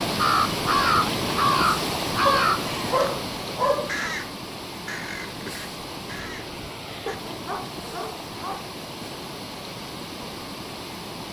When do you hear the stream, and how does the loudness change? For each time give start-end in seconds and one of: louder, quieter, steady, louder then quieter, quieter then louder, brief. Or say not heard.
0.0-11.2 quieter.